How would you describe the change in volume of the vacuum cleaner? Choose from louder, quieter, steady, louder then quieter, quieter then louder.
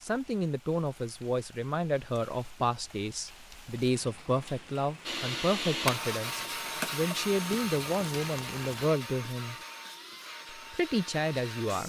quieter.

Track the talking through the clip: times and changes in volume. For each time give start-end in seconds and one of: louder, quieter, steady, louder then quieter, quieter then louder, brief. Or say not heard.
0.0-9.6 steady
10.6-11.8 brief.